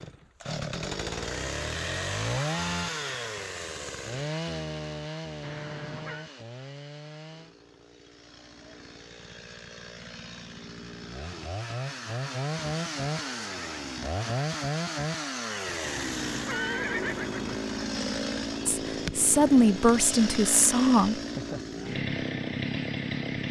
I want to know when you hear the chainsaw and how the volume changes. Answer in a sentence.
The chainsaw can be heard from 0.0 to 23.4 s, getting quieter then louder.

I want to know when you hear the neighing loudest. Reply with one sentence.
The loudest moment of the neighing is at 17 seconds.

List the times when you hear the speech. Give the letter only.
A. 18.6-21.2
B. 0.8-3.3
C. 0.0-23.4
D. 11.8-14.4
A.